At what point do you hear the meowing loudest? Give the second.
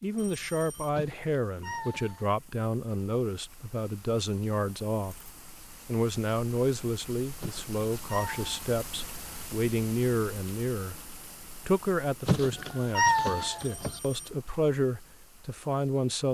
13 s.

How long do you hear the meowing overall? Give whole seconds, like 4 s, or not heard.
4 s.